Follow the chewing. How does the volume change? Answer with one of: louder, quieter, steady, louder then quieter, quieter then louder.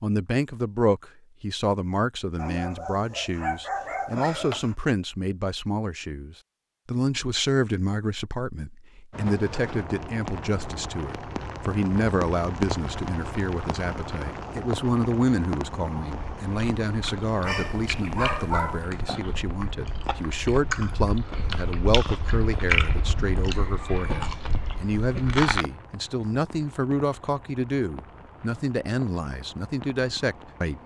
louder then quieter.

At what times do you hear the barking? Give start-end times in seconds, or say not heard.
2.4-4.8, 17.4-18.9.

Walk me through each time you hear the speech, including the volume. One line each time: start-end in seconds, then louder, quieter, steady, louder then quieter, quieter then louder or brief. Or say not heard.
0.0-30.8 steady.